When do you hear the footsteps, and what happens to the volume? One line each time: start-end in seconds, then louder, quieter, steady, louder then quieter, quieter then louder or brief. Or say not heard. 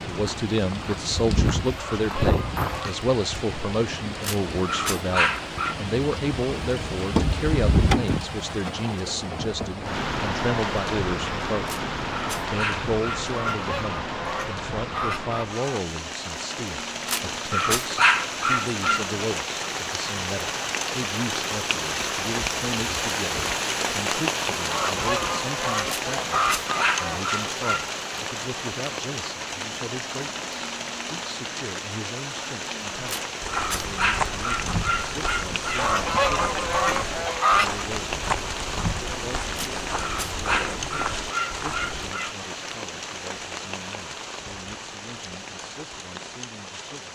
0.1-2.9 brief
33.4-42.1 steady.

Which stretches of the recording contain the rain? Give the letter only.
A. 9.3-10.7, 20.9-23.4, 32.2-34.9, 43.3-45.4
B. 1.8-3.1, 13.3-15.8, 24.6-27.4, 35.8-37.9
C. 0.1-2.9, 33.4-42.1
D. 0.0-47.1
D.